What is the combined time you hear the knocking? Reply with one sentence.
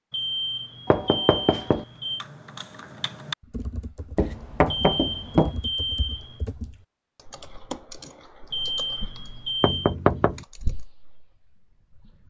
The knocking can be heard for 3 seconds in total.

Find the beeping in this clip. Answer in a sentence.
You can hear the beeping from 0.1 to 2.2 s, from 4.7 to 6.5 s and from 8.5 to 9.9 s.